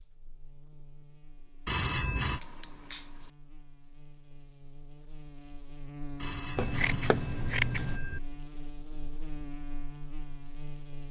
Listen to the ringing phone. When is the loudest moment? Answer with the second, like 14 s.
2 s.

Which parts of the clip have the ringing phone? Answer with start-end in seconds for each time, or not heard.
1.6-2.4, 6.2-8.2.